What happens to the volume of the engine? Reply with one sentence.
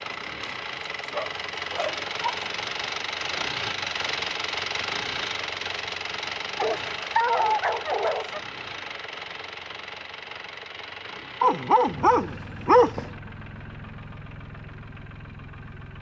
The volume of the engine goes down.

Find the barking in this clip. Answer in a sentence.
You can hear the barking from 0.1 to 2.6 s, from 6.5 to 8.4 s and from 11.4 to 13.1 s.